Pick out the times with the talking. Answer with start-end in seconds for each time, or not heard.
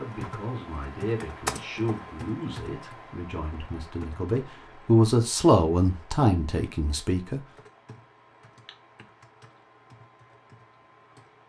0.0-7.4.